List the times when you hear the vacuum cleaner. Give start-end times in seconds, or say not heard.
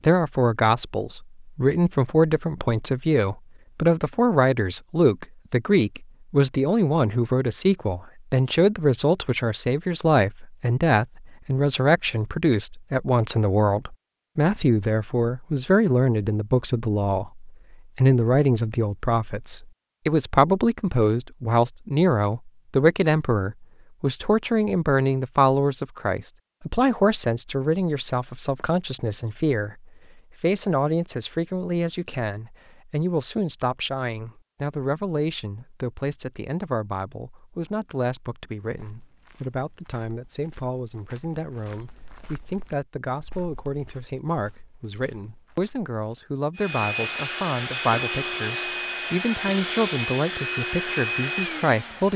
46.5-52.1.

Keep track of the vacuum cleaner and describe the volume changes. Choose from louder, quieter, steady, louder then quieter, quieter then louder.
steady.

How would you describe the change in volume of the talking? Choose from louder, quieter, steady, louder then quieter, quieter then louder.
quieter.